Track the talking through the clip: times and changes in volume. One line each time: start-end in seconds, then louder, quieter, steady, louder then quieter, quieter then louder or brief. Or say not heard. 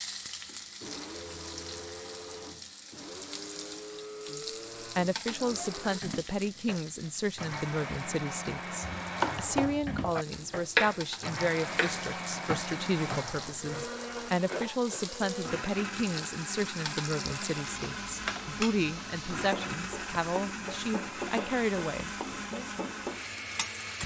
4.3-22.7 steady.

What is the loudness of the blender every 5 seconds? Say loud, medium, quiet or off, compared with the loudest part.
medium, loud, loud, loud, loud.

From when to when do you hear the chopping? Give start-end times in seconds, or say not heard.
8.8-13.8.